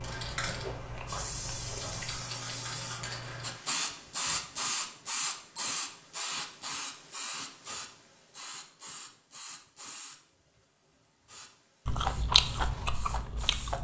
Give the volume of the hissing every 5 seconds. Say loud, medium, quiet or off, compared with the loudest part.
loud, loud, quiet.